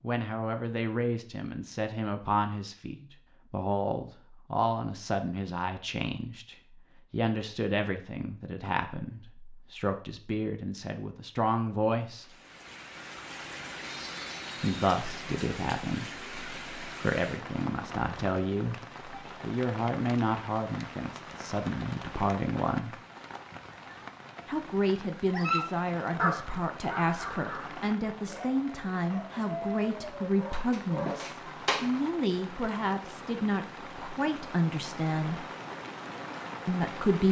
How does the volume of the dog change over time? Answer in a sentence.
The loudness of the dog goes down, then up.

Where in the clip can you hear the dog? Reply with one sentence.
The dog can be heard from 25.3 to 31.9 s.